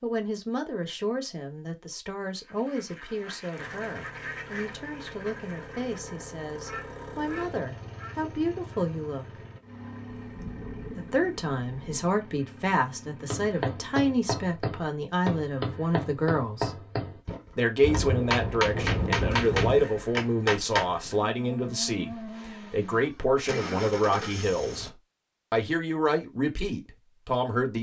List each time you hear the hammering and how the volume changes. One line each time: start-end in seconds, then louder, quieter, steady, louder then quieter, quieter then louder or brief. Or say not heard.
13.3-20.9 louder.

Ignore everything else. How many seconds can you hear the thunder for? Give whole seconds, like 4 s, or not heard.
4 s.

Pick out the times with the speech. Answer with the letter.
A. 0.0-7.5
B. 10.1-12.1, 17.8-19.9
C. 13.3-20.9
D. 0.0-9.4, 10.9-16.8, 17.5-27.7
D.